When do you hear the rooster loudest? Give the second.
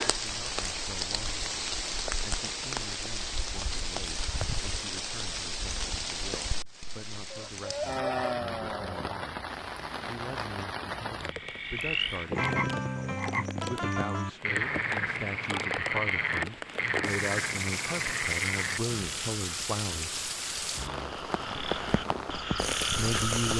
8 s.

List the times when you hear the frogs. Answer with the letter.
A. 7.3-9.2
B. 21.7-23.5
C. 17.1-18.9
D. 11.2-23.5
D.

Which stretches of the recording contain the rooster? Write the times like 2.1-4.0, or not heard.
7.3-9.2.